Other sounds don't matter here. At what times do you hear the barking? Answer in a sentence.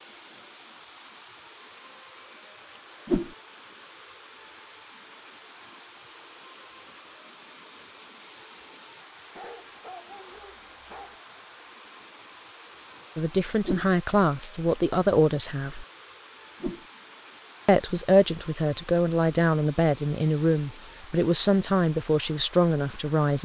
The barking can be heard from 9.3 to 11.2 s.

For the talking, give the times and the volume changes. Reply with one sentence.
The talking can be heard briefly from 13.2 to 15.8 s; and from 17.6 to 23.4 s, at a steady volume.